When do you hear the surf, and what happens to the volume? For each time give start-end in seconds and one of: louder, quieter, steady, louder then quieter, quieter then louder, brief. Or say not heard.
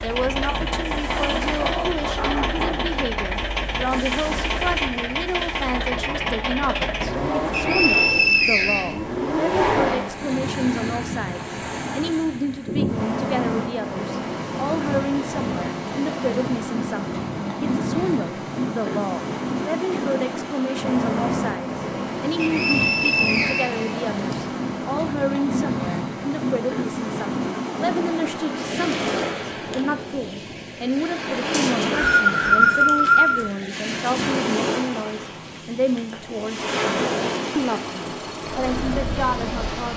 0.0-39.9 louder.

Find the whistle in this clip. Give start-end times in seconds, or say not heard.
7.5-8.9, 22.4-24.4, 31.5-33.4.